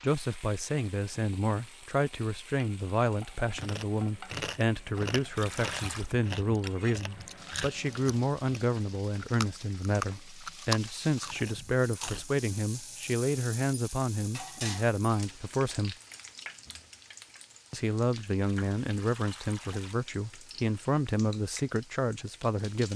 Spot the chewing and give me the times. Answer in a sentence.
You can hear the chewing from 3.5 to 12.2 s.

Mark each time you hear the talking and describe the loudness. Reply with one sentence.
The talking can be heard from 0.0 to 15.9 s, at a steady volume; and from 17.7 to 22.9 s, at a steady volume.